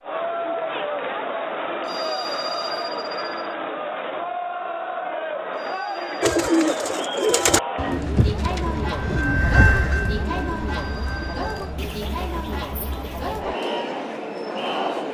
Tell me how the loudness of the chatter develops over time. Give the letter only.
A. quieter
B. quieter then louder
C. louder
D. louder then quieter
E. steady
E.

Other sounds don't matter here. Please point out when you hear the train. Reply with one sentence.
You can hear the train from 9.0 to 11.8 s.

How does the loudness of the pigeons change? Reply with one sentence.
The volume of the pigeons goes down.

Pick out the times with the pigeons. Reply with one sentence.
You can hear the pigeons from 6.2 to 13.4 s.